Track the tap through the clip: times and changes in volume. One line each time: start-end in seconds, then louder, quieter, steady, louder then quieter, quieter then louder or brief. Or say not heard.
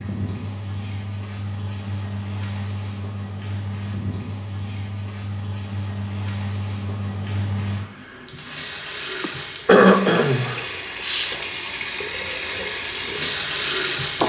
0.0-14.2 louder.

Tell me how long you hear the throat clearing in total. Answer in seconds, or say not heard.
2 s.